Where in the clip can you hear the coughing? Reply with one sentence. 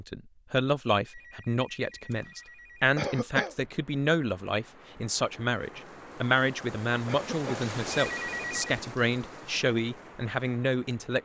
You can hear the coughing from 3.0 to 3.5 s and from 7.0 to 7.7 s.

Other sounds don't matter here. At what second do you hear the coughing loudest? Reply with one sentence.
The loudest moment of the coughing is at 3 seconds.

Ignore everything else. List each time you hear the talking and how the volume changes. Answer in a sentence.
You can hear the talking from 0.0 to 11.2 s, at a steady volume.